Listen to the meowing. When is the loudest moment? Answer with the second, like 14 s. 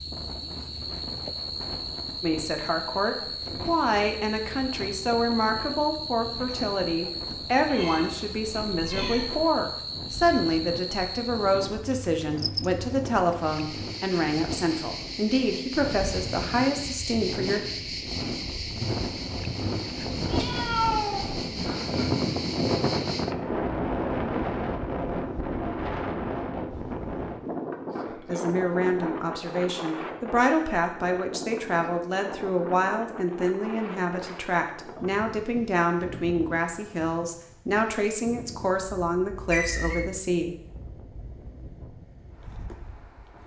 21 s.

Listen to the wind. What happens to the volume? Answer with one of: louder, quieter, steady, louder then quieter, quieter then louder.
louder then quieter.